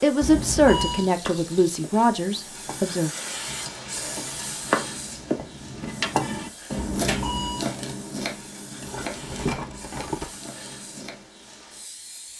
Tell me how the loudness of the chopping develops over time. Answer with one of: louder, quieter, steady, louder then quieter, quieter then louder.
louder then quieter.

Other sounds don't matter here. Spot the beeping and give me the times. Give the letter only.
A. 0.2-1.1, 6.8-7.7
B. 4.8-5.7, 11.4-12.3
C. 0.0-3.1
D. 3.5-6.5
A.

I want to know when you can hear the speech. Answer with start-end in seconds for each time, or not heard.
0.0-3.1.